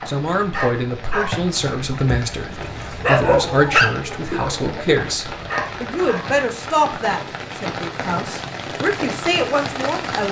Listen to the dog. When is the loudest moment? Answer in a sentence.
The loudest moment of the dog is at 3 seconds.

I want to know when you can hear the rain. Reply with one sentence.
You can hear the rain from 0.0 to 10.2 s.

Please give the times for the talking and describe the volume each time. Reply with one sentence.
The talking can be heard from 0.1 to 10.2 s, at a steady volume.